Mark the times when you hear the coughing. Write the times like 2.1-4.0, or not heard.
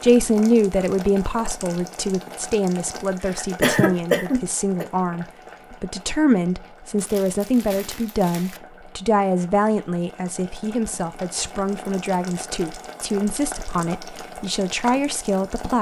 3.2-4.8.